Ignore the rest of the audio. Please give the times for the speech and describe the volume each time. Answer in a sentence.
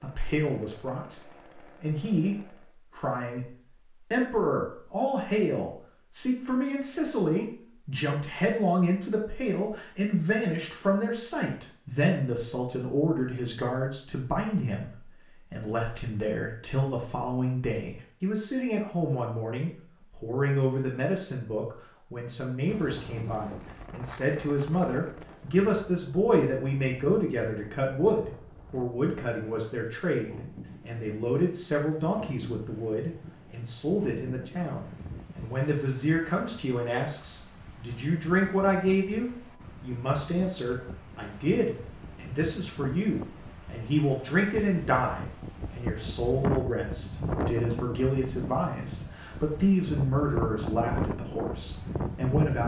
The speech can be heard from 0.0 to 52.6 s, at a steady volume.